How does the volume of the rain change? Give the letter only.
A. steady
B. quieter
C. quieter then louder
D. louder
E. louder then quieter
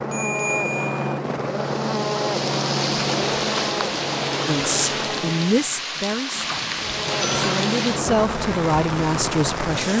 A.